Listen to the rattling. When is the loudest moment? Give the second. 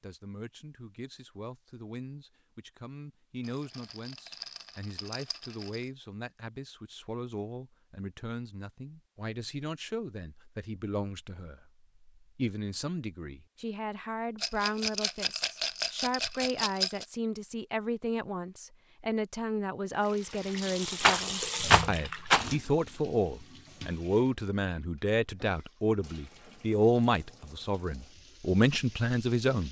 22 s.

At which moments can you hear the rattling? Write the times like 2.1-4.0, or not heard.
3.5-5.8, 14.4-17.1, 21.0-22.5.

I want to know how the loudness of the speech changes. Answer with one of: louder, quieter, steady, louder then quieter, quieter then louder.
louder.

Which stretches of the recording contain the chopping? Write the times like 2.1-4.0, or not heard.
not heard.